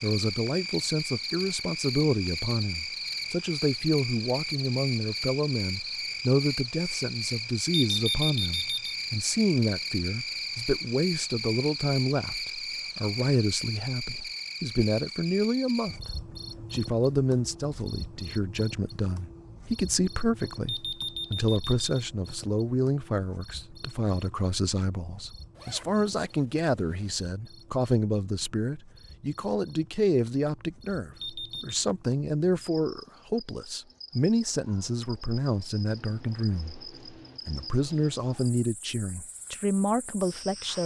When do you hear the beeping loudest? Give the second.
8 s.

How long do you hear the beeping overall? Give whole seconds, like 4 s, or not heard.
3 s.